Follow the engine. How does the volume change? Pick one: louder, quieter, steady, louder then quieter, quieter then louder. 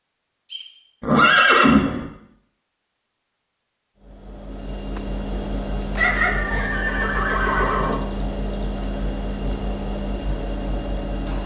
steady.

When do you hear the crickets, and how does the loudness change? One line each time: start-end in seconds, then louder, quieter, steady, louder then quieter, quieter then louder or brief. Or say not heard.
4.5-11.4 steady.